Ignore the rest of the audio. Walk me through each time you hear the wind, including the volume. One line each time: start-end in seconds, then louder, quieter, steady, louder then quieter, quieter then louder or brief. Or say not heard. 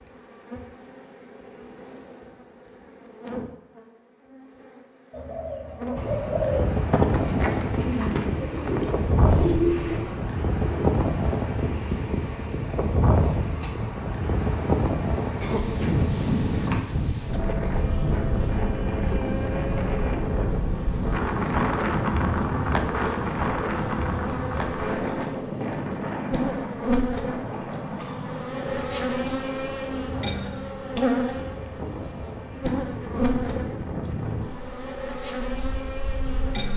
6.0-36.5 quieter.